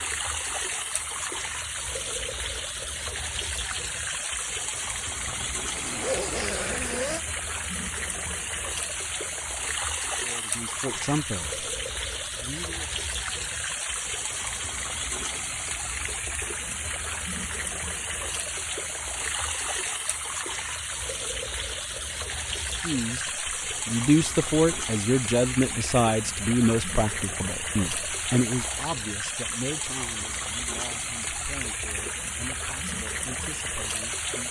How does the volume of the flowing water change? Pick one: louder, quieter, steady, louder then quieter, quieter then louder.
steady.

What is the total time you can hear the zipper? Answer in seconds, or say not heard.
2 s.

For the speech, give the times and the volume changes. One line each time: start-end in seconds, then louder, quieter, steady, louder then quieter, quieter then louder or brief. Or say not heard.
10.2-11.7 brief
12.4-12.9 brief
22.8-34.4 quieter.